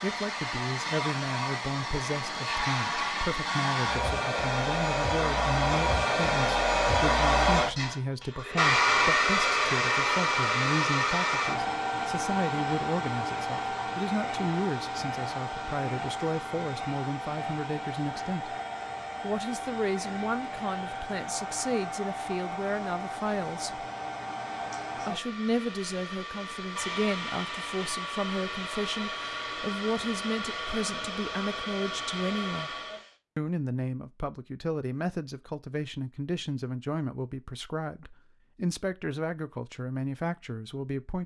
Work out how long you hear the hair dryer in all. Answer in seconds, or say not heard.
33 s.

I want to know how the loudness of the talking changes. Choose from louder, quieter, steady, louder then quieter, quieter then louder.
steady.